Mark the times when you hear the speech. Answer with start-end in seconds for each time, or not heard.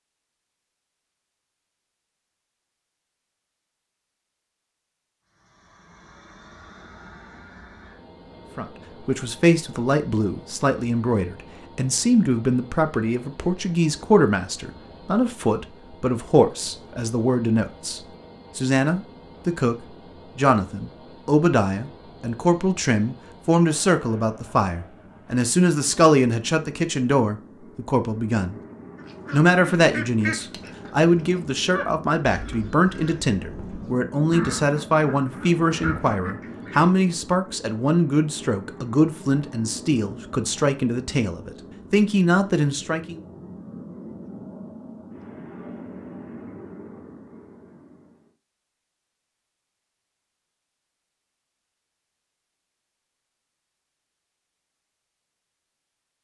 8.6-28.6, 29.3-43.2.